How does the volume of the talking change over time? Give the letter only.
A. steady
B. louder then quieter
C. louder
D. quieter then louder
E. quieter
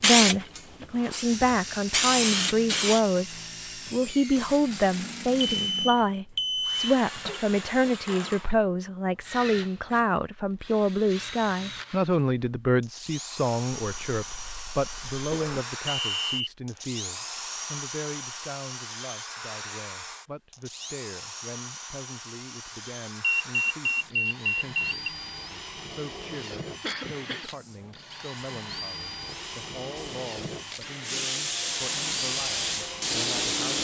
E.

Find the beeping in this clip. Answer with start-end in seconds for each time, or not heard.
5.5-7.4, 15.8-16.5, 23.2-25.1.